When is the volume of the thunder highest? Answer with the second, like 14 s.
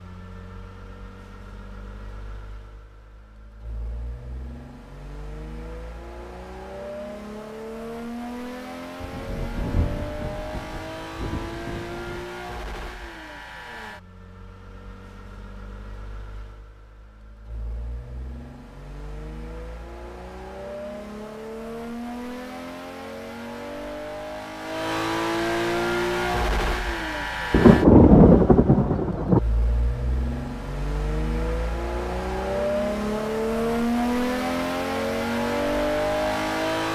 28 s.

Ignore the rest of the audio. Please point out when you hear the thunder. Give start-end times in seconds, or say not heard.
9.0-12.2, 27.5-29.4.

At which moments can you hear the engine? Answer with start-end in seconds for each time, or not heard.
0.0-36.9.